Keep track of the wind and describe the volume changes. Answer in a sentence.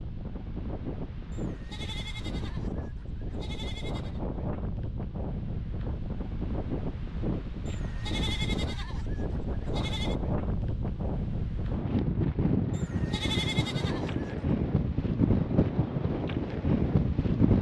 The loudness of the wind goes up.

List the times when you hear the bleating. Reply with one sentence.
The bleating can be heard from 1.3 to 4.2 s, from 7.7 to 10.2 s and from 12.7 to 14.4 s.